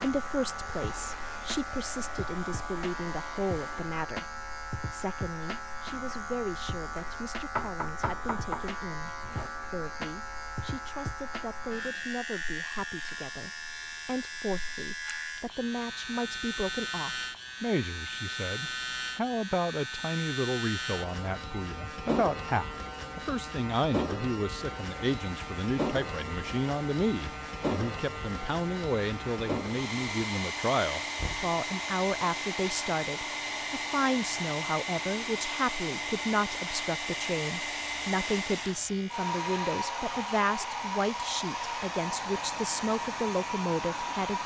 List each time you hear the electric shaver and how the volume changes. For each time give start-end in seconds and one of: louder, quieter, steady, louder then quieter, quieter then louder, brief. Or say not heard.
0.0-44.4 quieter.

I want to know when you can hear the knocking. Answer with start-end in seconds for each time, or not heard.
7.5-9.5, 31.1-31.6.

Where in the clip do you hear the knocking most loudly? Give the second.
8 s.